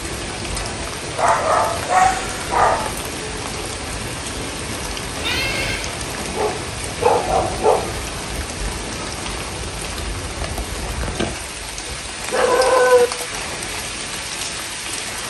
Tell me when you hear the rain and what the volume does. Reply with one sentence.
You can hear the rain from 0.0 to 15.2 s, at a steady volume.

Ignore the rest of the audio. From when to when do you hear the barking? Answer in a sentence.
The barking can be heard from 1.1 to 2.9 s, from 6.2 to 7.9 s and from 11.8 to 13.1 s.